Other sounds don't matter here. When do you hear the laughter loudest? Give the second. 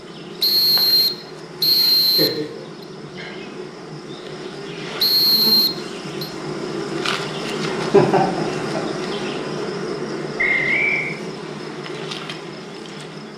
8 s.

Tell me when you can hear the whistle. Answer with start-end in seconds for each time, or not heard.
0.4-2.4, 5.0-6.3, 10.3-11.2.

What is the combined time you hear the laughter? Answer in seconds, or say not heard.
2 s.